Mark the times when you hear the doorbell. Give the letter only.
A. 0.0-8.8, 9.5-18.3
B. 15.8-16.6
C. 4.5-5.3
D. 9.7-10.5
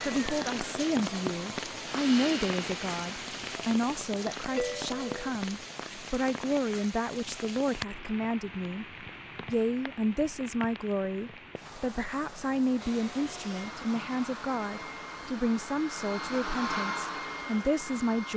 C.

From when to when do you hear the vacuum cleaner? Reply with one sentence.
You can hear the vacuum cleaner from 0.0 to 3.6 s and from 12.8 to 18.3 s.